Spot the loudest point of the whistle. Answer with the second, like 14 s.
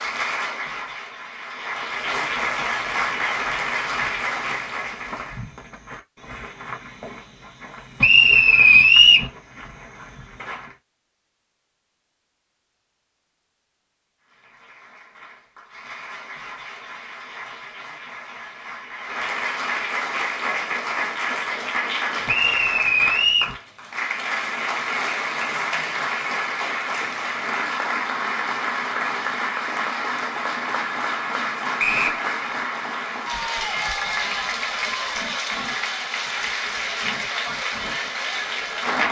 9 s.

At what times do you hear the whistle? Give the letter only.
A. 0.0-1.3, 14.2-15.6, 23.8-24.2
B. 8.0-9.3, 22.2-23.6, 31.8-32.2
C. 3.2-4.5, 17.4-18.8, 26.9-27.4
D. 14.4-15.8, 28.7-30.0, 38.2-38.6
B.